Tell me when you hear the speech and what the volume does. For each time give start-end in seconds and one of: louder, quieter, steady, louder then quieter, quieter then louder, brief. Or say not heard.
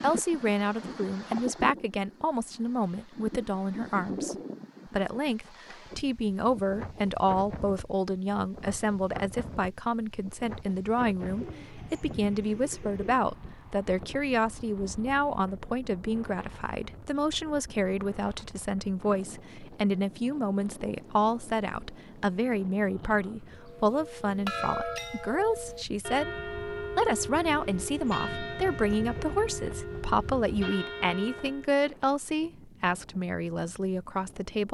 0.0-34.6 steady.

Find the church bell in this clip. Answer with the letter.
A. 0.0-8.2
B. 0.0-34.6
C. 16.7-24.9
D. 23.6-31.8
D.